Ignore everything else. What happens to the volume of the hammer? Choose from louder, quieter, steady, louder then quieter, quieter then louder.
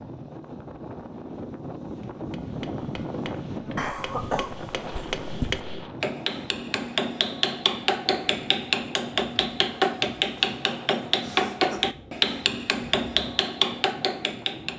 louder.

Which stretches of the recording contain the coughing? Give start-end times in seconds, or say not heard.
3.8-5.6, 11.2-11.9.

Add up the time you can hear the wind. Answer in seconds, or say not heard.
15 s.